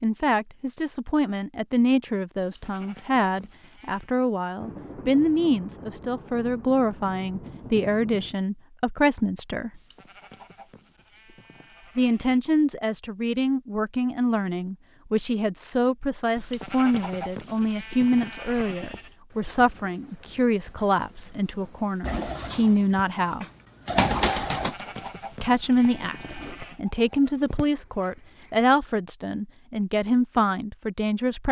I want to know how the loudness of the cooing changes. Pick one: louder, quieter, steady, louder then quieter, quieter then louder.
louder then quieter.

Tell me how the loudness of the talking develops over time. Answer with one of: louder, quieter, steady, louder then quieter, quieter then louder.
steady.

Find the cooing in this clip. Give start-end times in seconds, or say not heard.
22.0-28.5.